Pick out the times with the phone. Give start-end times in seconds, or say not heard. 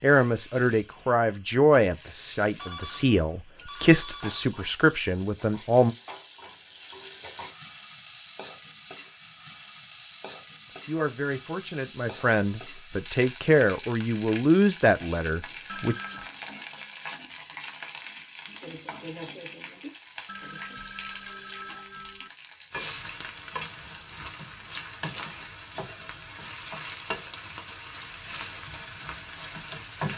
2.5-4.5, 15.7-16.3, 20.2-22.3.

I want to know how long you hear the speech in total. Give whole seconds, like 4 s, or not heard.
11 s.